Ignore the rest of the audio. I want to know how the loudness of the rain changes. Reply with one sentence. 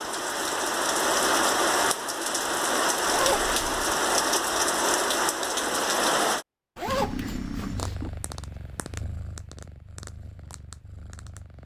The loudness of the rain stays about the same.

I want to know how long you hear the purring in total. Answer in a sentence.
The purring can be heard for 5 seconds in total.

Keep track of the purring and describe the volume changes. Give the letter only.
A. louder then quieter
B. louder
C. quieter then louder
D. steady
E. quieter
E.